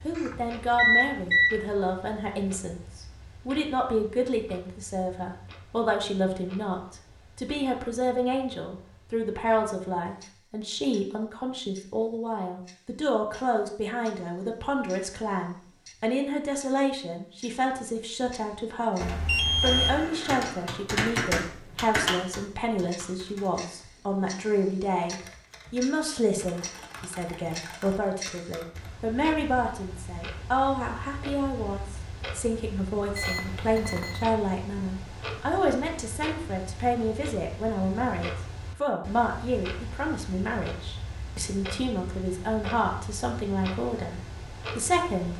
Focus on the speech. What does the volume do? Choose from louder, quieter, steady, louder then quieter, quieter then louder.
steady.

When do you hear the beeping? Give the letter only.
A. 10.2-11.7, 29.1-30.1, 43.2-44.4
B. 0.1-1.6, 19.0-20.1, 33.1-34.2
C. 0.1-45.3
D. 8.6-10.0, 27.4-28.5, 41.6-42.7
B.